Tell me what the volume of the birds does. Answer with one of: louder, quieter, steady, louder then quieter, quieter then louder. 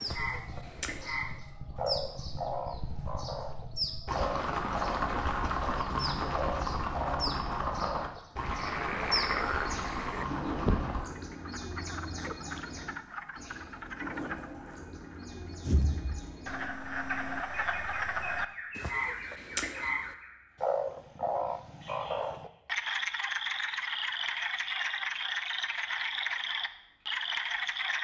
quieter.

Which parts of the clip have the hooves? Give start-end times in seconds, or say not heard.
0.1-11.1.